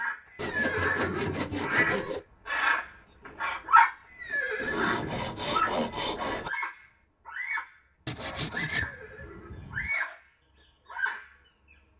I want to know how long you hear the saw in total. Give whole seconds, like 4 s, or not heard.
6 s.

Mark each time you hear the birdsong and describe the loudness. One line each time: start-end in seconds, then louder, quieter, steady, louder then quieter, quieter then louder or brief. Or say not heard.
0.0-9.0 louder then quieter
9.7-10.2 brief
10.8-11.3 brief.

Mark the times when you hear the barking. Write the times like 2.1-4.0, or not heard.
not heard.